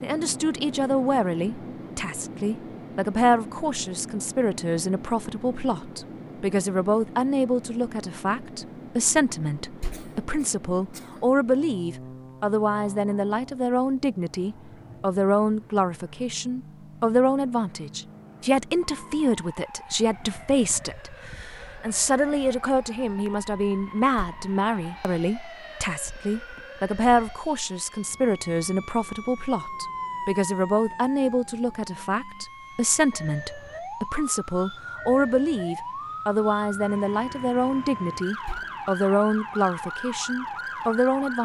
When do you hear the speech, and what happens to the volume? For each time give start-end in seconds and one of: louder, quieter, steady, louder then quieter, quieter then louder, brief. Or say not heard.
0.0-41.4 steady.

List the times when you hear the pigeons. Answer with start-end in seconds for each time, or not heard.
not heard.